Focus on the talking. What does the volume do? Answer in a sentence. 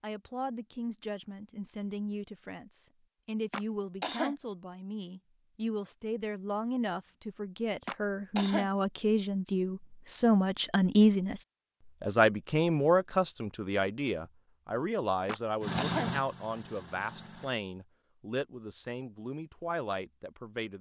The volume of the talking goes up, then down.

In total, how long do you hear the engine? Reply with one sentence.
The engine can be heard for 2 seconds in total.